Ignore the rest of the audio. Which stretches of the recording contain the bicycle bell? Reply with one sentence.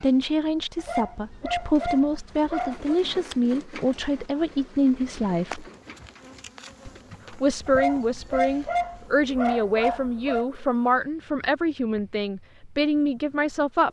The bicycle bell can't be heard in this clip.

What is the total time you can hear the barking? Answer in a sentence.
The barking can be heard for 5 seconds in total.